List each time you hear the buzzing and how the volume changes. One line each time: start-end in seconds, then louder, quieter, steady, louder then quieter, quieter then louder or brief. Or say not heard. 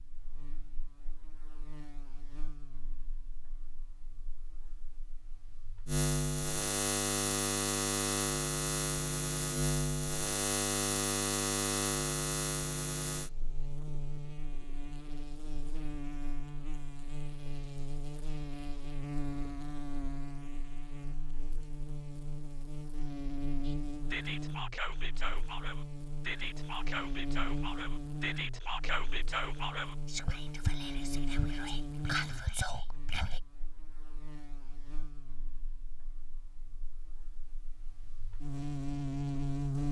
0.0-39.8 quieter.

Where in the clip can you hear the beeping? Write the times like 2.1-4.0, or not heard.
not heard.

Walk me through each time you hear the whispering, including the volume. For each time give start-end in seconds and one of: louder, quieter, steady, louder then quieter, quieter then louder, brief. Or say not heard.
23.6-33.4 steady.